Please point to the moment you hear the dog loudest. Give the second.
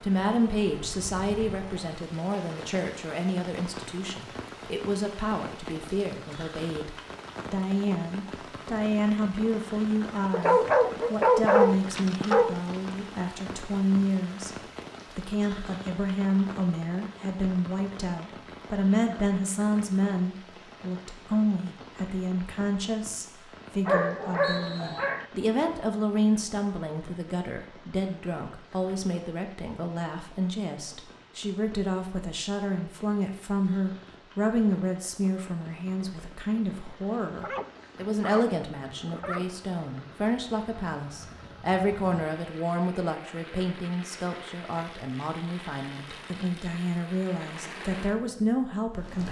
11 s.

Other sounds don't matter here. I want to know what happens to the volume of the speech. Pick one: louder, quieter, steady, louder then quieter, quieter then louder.
steady.